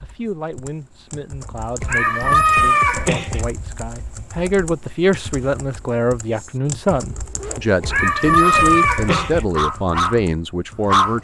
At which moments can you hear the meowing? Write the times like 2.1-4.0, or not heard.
1.8-3.5, 7.8-9.4.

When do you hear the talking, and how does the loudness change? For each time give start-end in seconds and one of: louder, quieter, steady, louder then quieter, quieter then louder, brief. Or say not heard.
0.0-11.2 louder.